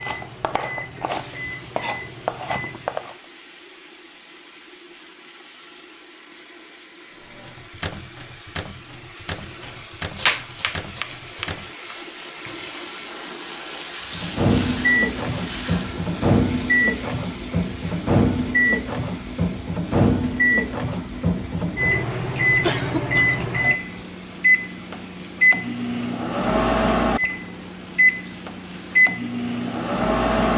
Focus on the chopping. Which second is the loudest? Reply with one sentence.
The loudest moment of the chopping is at 10 seconds.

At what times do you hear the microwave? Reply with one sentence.
The microwave can be heard from 0.0 to 3.1 s, from 7.2 to 11.7 s and from 14.2 to 30.5 s.